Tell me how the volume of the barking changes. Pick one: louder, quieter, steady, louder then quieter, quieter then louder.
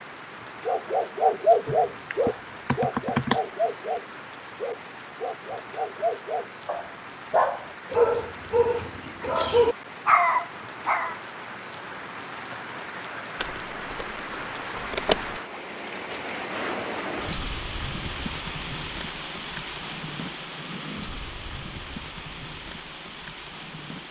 quieter then louder.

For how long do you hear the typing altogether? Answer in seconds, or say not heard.
4 s.